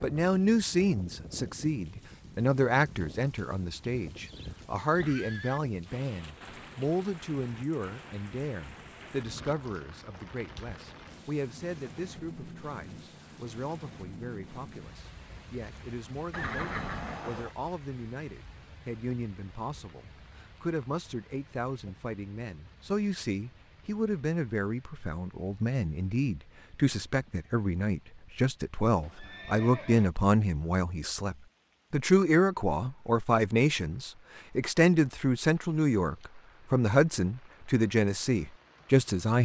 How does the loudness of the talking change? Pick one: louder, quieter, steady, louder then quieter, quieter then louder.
quieter then louder.